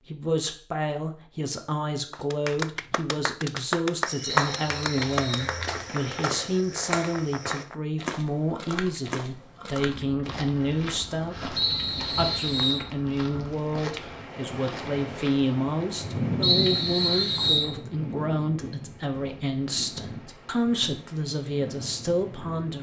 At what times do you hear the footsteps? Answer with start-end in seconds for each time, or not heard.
4.0-15.5.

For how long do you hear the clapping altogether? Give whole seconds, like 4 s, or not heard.
6 s.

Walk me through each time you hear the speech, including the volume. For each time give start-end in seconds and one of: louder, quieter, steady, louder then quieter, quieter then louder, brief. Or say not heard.
0.1-22.7 steady.